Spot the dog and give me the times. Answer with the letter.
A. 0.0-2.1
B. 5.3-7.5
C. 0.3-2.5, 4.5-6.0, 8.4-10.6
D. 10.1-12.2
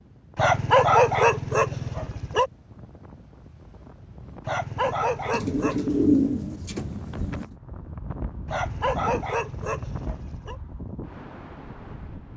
C.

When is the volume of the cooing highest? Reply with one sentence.
The volume of the cooing peaks at 6 seconds.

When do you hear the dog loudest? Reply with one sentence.
The volume of the dog peaks at 1 second.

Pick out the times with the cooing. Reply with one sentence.
You can hear the cooing from 5.3 to 7.5 s.